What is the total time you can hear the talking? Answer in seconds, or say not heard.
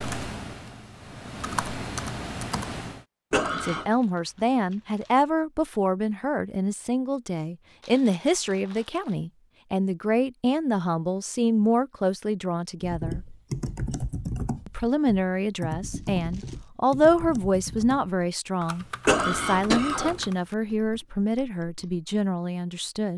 18 s.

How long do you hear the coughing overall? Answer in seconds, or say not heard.
2 s.